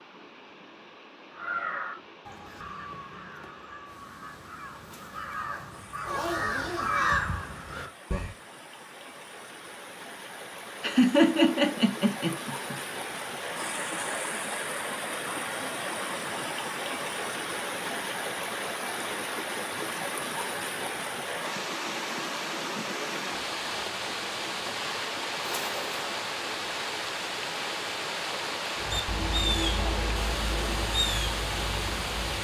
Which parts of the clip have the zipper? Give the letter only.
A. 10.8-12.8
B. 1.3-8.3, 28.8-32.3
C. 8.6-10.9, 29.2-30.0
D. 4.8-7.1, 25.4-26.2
D.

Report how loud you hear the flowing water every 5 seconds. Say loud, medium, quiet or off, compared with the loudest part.
quiet, quiet, loud, loud, loud, loud, loud.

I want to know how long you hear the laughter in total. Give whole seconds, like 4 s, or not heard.
2 s.